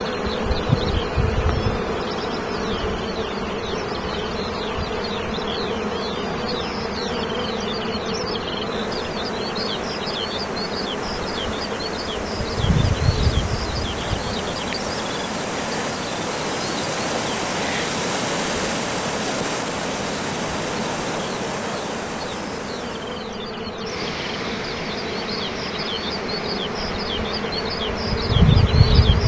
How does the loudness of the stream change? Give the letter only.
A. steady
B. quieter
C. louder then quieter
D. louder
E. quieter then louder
C.